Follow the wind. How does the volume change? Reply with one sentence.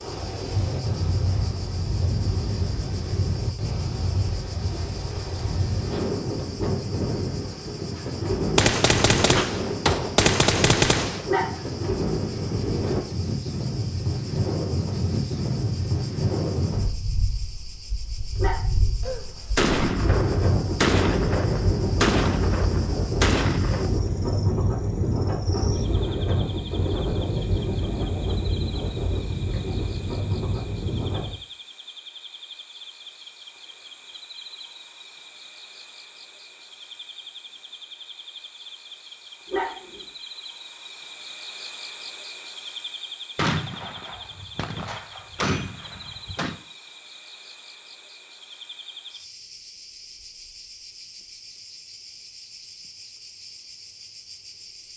The loudness of the wind stays about the same.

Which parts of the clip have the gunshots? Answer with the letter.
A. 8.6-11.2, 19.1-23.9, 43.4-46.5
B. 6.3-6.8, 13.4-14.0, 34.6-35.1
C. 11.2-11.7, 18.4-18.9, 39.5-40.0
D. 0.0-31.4
A.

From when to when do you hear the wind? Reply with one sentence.
You can hear the wind from 0.0 to 31.4 s.